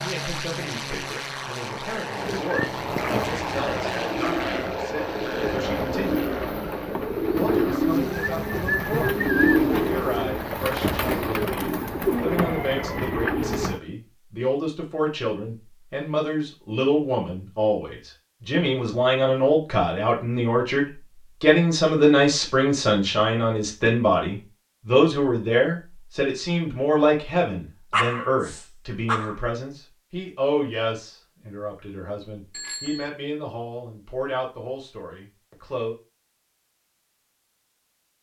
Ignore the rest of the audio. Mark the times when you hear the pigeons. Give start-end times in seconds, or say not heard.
2.2-13.8.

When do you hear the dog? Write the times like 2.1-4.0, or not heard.
27.9-29.4.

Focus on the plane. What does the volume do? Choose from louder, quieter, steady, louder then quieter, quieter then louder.
quieter.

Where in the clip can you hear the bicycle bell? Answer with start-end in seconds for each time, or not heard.
32.5-33.1.